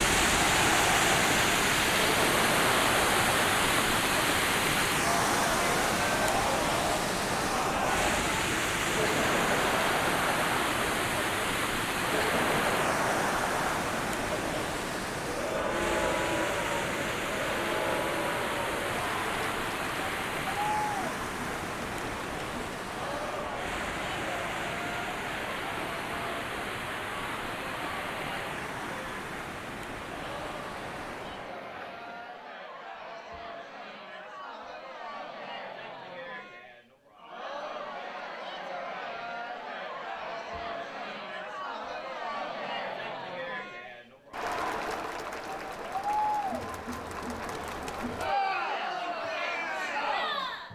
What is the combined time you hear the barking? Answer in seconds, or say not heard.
not heard.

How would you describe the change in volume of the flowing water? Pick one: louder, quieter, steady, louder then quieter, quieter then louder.
quieter.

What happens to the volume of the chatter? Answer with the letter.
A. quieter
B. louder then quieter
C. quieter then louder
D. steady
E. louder
C.